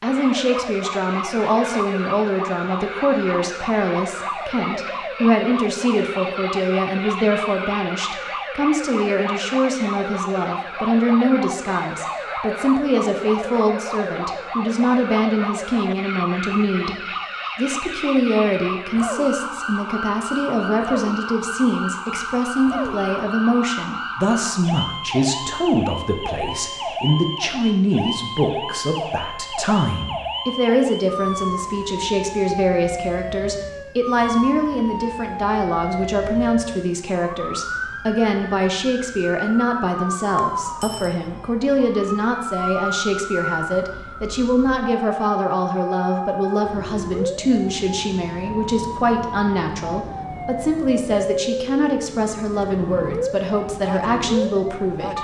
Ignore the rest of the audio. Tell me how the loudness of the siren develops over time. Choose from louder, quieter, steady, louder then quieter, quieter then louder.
steady.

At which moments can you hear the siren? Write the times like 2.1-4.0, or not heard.
0.0-55.1.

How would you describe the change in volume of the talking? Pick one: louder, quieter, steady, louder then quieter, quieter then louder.
steady.